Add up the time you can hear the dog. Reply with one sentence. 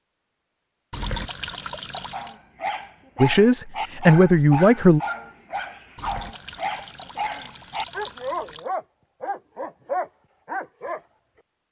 The dog can be heard for 9 seconds in total.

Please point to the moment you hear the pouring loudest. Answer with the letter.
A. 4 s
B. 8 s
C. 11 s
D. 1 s
D.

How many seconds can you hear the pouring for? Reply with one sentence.
You can hear the pouring for 4 seconds altogether.